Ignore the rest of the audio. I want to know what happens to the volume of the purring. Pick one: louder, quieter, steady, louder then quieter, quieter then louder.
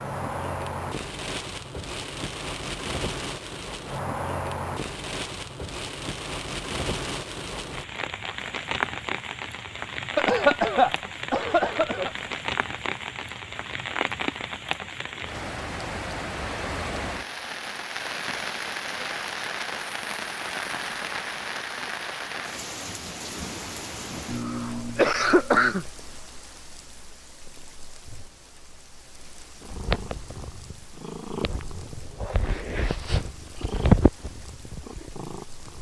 louder then quieter.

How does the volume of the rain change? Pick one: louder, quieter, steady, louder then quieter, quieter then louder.
quieter.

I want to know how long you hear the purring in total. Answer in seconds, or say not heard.
6 s.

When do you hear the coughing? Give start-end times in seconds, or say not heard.
10.2-12.1, 24.2-25.9.